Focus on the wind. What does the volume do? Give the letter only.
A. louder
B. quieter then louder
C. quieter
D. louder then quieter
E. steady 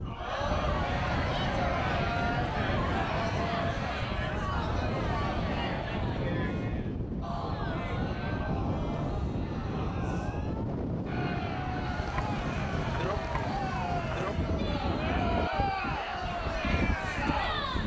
E.